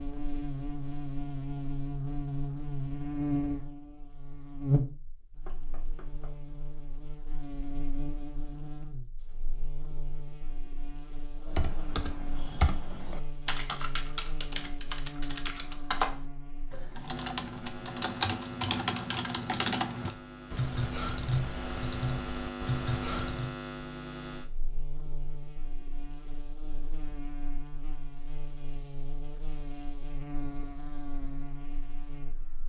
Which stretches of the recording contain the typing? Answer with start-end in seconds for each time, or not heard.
11.4-23.6.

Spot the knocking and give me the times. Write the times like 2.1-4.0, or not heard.
5.5-6.3.